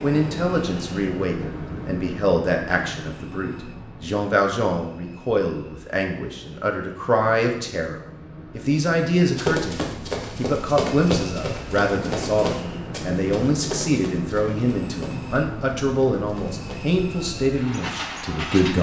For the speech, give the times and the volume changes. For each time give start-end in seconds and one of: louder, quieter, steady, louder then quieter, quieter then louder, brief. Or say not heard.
0.0-18.7 steady.